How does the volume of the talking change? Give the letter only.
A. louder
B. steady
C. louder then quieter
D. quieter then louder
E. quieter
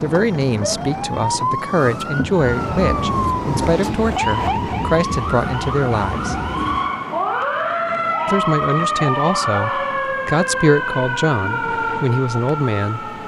B.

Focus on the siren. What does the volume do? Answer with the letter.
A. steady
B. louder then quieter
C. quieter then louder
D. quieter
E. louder
A.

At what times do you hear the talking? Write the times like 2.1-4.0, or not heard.
0.0-6.3, 8.2-13.1.